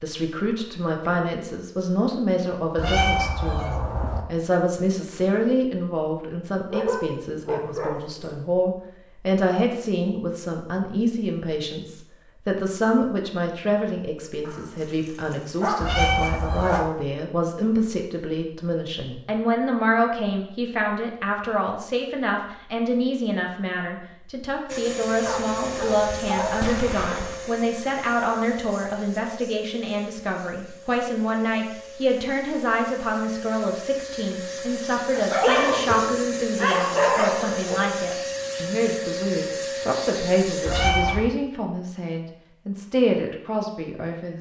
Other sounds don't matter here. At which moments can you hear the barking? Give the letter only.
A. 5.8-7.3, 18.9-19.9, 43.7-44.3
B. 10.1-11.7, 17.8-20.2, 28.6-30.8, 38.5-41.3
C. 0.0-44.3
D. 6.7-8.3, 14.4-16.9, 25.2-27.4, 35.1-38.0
D.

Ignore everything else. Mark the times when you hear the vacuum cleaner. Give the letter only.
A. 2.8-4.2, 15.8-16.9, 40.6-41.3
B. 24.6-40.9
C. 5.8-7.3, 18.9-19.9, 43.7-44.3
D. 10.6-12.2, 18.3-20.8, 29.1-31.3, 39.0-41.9
B.